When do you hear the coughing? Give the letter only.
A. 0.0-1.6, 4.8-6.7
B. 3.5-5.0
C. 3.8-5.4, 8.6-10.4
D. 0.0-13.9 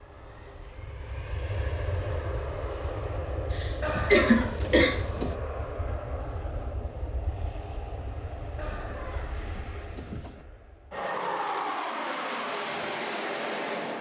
B.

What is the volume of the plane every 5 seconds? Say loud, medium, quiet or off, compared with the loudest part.
medium, medium, loud.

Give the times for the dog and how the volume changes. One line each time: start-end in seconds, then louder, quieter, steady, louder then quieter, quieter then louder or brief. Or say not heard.
not heard.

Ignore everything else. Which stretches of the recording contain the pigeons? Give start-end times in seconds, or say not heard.
3.8-5.4, 8.6-10.4.